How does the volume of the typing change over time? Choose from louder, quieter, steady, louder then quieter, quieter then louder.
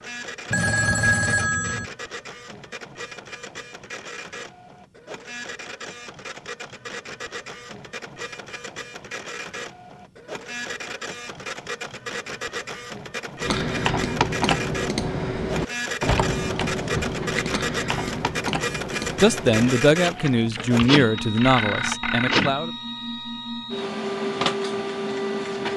quieter.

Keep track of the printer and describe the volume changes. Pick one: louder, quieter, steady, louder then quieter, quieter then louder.
louder.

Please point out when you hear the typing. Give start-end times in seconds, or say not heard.
13.4-22.0.